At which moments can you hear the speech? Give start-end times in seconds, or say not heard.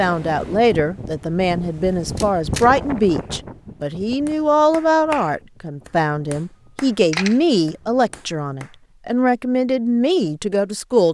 0.0-11.0.